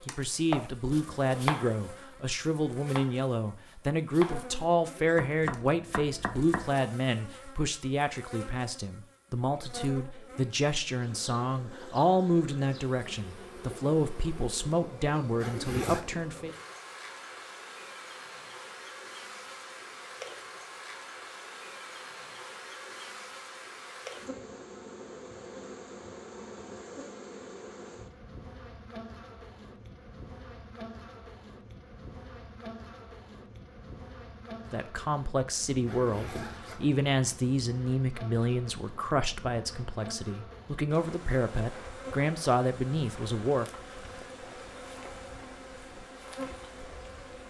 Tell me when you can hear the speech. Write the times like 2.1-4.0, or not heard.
0.1-16.6, 34.7-43.6.